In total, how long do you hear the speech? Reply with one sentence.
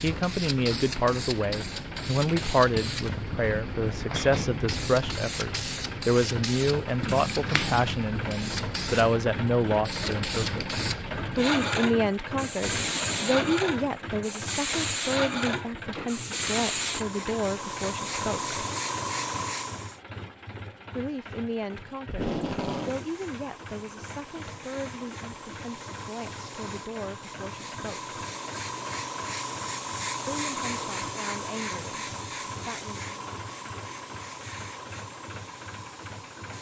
The speech can be heard for 28 seconds in total.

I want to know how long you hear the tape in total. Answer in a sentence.
The tape can be heard for 2 seconds in total.